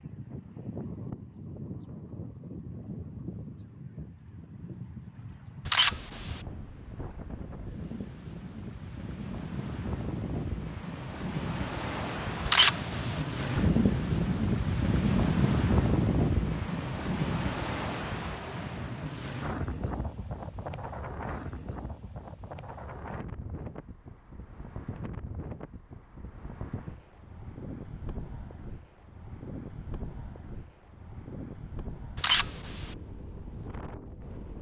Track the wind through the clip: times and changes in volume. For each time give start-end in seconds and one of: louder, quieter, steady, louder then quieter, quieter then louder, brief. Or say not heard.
0.0-34.5 louder then quieter.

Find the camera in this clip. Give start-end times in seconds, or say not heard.
5.7-6.4, 12.4-13.2, 32.1-33.0.